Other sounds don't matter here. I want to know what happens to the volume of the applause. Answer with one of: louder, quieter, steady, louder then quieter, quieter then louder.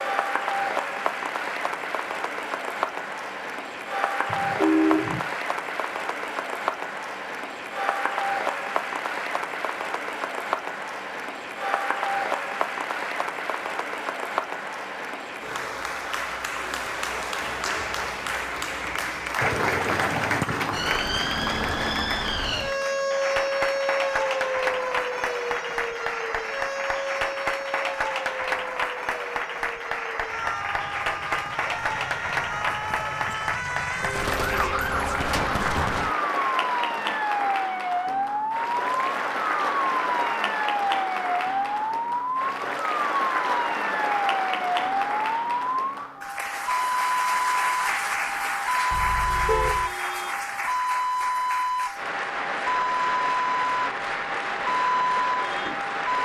steady.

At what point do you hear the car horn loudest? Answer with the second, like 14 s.
5 s.